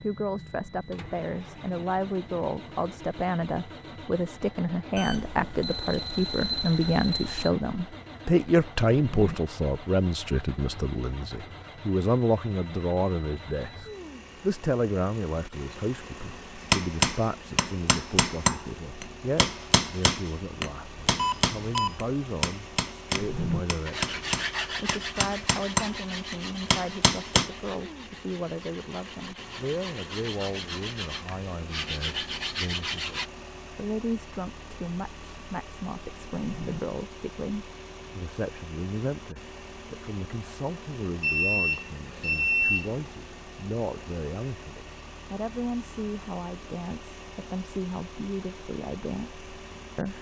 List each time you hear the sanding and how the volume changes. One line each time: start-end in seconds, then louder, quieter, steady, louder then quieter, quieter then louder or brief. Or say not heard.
23.9-33.3 quieter then louder.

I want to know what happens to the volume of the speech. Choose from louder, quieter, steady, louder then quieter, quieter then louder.
quieter.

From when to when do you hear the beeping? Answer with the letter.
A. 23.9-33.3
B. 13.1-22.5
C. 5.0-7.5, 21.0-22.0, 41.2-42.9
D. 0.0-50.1
C.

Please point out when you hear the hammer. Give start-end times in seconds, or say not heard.
16.7-27.5.